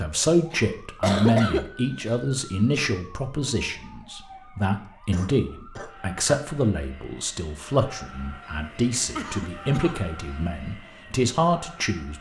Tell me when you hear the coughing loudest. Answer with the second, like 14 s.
1 s.